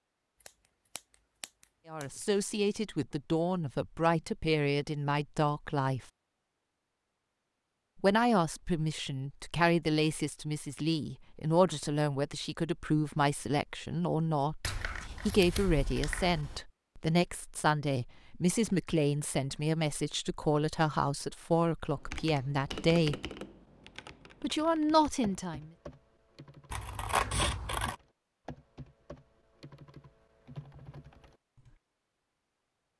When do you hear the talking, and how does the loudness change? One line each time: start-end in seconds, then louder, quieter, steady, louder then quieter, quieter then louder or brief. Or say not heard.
1.9-6.0 steady
8.0-23.2 steady
24.4-25.7 brief.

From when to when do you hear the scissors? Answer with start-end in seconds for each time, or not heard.
0.5-2.2, 14.6-16.6, 26.7-27.9.